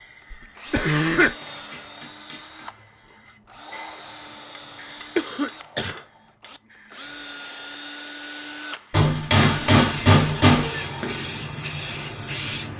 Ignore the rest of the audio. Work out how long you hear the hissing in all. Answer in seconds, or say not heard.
13 s.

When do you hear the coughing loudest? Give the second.
1 s.